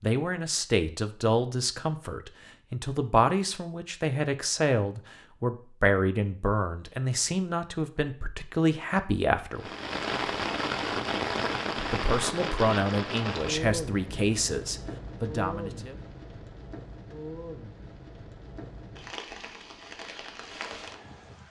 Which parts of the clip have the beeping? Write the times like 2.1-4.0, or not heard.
not heard.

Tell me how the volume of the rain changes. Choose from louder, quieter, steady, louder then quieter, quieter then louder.
quieter.